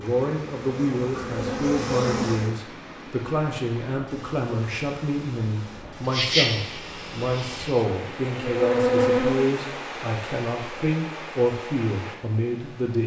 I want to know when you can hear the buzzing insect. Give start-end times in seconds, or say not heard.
0.0-2.5, 6.0-9.5.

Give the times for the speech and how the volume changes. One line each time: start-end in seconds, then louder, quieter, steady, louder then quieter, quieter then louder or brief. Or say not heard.
0.0-13.0 steady.